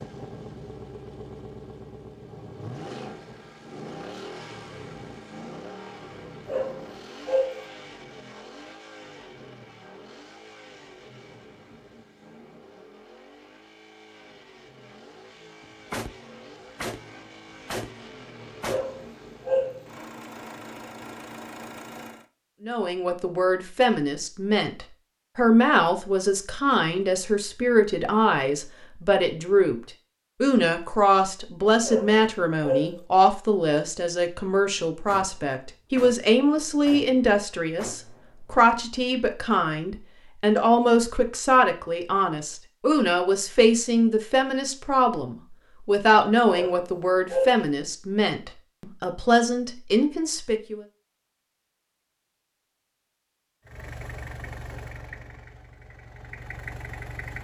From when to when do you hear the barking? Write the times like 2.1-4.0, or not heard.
6.5-7.6, 18.6-19.8, 31.9-33.0, 46.5-47.6.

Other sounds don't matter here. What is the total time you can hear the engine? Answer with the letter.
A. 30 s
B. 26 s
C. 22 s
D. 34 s
B.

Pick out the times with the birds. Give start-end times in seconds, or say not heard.
not heard.